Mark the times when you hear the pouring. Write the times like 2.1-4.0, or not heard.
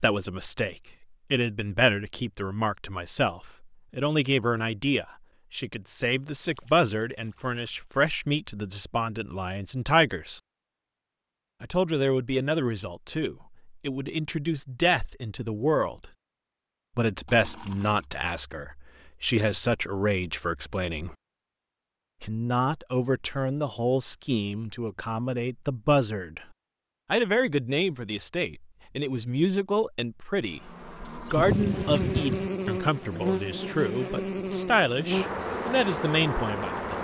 6.3-7.8, 17.2-18.1, 31.4-32.5.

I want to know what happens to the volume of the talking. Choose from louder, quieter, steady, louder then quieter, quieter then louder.
steady.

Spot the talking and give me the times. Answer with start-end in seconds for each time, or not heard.
0.0-10.4, 11.6-16.1, 16.9-21.1, 22.2-26.4, 27.1-36.8.